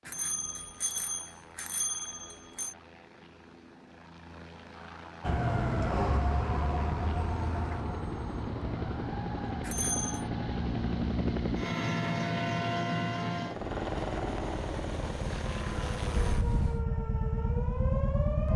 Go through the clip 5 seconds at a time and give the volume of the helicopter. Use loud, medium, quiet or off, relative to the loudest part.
quiet, medium, loud, medium.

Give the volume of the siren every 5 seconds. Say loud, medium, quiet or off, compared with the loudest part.
off, loud, medium, loud.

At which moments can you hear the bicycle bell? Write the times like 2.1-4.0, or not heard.
0.1-2.8, 9.6-10.2, 16.1-16.8.